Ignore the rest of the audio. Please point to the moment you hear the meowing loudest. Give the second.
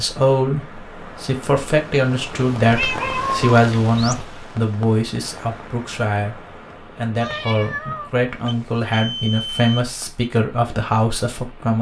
3 s.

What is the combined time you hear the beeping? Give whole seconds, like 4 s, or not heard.
2 s.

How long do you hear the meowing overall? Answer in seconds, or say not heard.
3 s.